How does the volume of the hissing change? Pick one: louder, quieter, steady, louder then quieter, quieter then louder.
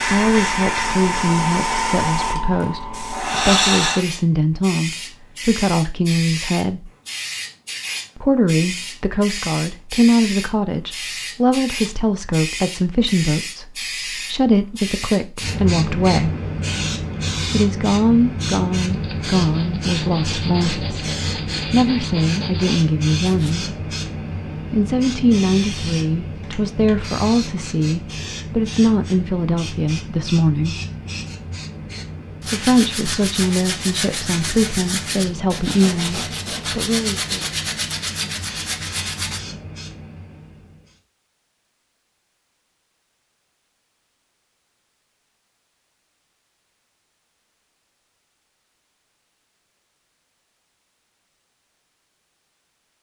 quieter.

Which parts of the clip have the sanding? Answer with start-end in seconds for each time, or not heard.
18.9-23.6, 32.4-39.4.